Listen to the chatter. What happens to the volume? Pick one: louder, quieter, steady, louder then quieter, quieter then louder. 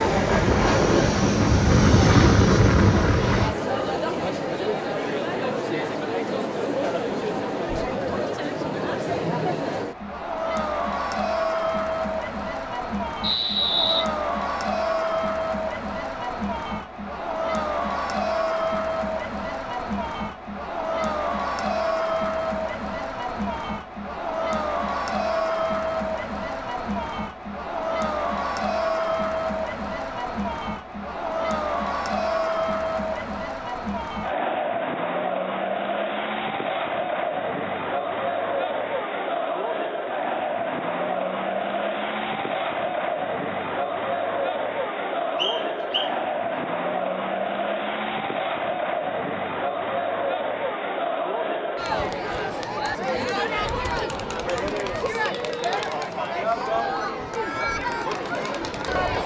steady.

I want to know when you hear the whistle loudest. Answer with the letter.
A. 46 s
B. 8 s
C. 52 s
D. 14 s
D.